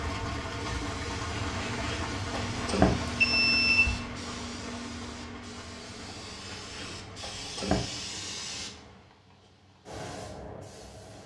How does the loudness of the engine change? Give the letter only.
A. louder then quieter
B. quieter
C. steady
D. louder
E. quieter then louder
B.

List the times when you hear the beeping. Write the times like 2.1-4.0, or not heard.
1.6-4.0, 6.5-7.8.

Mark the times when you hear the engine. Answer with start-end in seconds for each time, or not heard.
0.0-9.2.